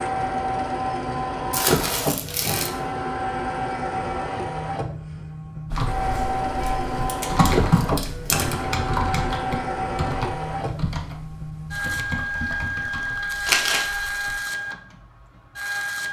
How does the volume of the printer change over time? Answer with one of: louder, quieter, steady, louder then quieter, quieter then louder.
steady.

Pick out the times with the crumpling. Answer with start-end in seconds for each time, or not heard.
1.5-2.7, 6.6-8.6, 13.4-13.8.